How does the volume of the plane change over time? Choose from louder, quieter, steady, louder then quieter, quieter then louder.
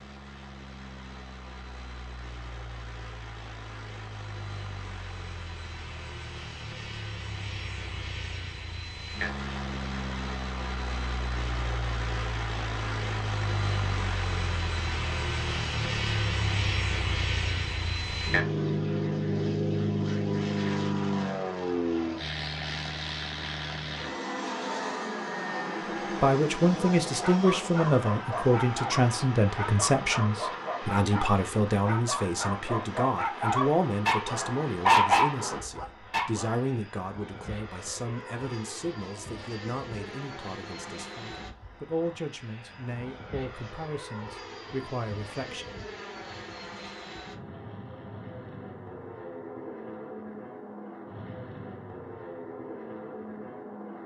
louder then quieter.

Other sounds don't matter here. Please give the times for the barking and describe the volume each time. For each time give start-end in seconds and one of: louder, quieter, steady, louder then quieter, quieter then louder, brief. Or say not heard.
26.6-36.6 louder.